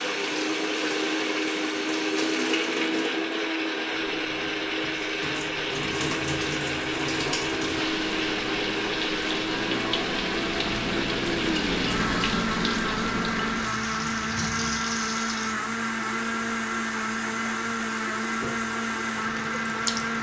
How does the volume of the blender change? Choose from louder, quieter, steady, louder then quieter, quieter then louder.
steady.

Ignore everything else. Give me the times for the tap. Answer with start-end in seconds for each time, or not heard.
0.0-20.1.